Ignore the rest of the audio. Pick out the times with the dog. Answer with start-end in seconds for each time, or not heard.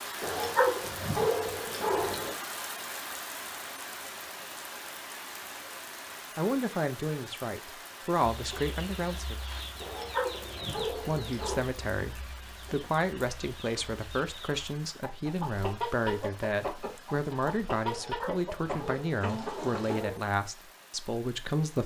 0.2-2.3, 9.8-11.6, 17.9-20.2.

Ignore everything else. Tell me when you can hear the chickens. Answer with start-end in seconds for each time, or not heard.
8.2-20.1.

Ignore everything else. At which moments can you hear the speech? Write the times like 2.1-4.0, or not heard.
6.3-9.3, 10.7-21.8.